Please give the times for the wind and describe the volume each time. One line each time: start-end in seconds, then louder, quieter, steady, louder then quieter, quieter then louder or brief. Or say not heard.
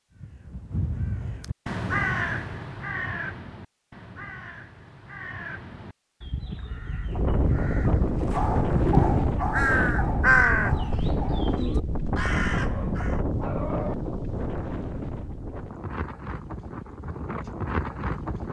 7.0-18.4 quieter.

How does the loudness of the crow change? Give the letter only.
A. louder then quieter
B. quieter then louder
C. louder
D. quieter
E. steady
B.